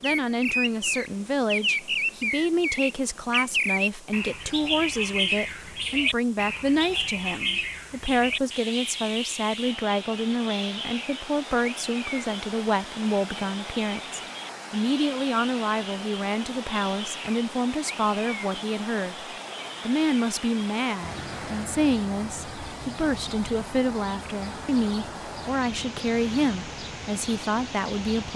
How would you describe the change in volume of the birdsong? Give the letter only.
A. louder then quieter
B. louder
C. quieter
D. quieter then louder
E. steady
C.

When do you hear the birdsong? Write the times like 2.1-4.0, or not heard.
0.0-28.3.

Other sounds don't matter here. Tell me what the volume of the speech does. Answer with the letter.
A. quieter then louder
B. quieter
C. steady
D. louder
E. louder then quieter
C.